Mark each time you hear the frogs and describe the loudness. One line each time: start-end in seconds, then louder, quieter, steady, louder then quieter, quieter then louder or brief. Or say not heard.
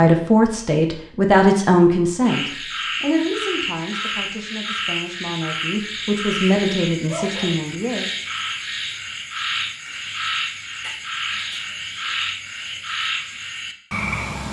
2.2-14.4 steady.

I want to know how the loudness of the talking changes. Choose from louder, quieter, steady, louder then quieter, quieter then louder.
quieter then louder.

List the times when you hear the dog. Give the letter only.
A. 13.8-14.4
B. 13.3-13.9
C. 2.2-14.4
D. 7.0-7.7
D.